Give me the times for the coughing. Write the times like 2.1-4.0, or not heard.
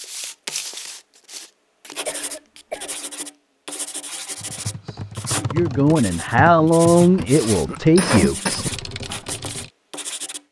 2.0-3.0, 7.2-8.7.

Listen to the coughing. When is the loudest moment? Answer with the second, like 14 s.
8 s.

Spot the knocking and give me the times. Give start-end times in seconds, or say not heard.
not heard.